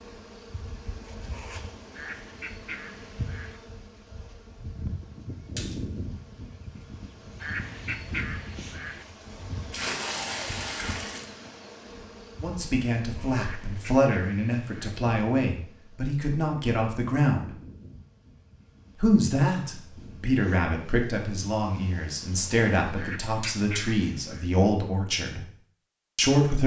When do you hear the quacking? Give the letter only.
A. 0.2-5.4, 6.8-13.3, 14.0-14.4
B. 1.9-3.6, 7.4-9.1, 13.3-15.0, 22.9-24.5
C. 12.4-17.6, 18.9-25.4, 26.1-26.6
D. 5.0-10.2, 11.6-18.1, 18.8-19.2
B.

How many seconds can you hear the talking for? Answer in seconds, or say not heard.
12 s.